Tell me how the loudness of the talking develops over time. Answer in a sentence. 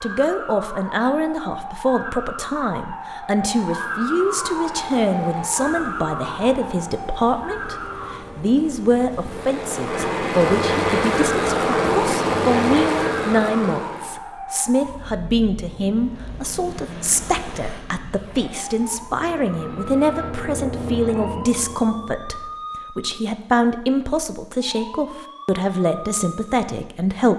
The volume of the talking stays about the same.